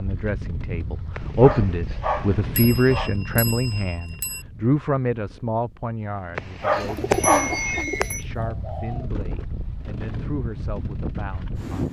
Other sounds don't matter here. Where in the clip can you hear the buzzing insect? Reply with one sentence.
The buzzing insect can't be heard in this clip.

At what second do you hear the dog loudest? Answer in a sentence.
The loudest moment of the dog is at 7 seconds.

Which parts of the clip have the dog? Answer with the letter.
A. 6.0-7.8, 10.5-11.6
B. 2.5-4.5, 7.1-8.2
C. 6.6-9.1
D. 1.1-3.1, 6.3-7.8
D.